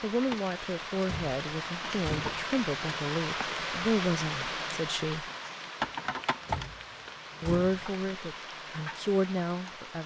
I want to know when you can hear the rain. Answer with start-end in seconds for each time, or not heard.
0.0-10.0.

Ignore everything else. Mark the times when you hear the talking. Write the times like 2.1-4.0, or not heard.
0.0-5.2, 7.4-10.0.